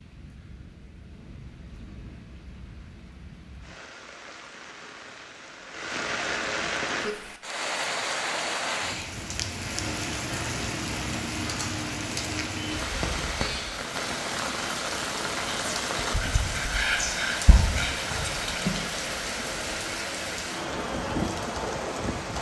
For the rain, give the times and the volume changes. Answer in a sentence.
The rain can be heard from 0.0 to 22.3 s, getting louder.